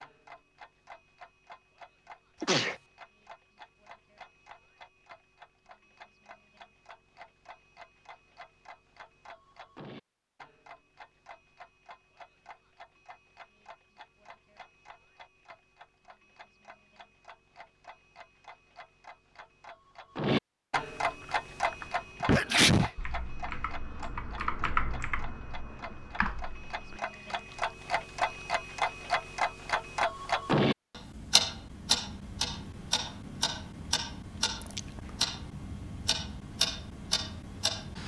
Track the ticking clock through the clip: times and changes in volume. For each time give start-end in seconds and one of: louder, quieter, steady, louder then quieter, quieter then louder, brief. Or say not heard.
0.0-38.0 louder.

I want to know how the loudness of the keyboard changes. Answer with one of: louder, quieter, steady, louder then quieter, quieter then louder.
louder then quieter.